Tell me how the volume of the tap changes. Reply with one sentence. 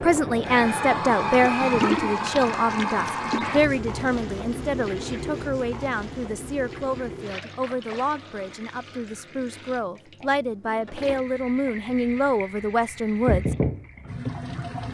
The volume of the tap goes down, then up.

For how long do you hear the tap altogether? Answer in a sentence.
You can hear the tap for 15 seconds altogether.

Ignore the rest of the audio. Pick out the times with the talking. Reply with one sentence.
You can hear the talking from 0.0 to 13.6 s.